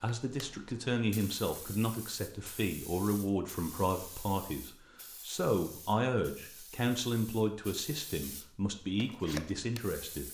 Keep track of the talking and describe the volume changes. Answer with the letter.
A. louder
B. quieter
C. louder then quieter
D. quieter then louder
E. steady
E.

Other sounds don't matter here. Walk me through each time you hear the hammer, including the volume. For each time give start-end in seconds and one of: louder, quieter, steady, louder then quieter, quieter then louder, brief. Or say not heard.
not heard.